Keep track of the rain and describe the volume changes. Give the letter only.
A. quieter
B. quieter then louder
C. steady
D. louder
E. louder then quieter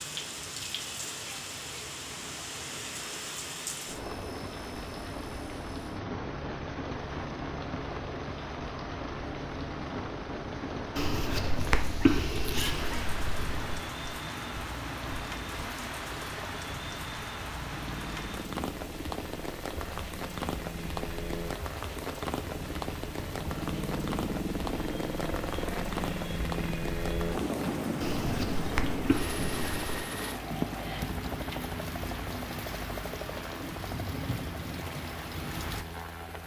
C.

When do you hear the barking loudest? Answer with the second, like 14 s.
12 s.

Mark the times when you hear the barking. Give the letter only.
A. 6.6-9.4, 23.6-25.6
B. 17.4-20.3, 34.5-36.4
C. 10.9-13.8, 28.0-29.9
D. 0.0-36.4
C.